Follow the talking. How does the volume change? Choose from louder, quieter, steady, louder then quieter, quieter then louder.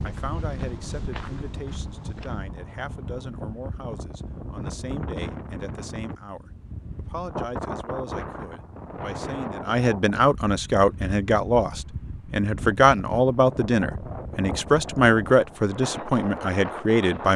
louder.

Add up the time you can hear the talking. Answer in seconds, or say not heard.
17 s.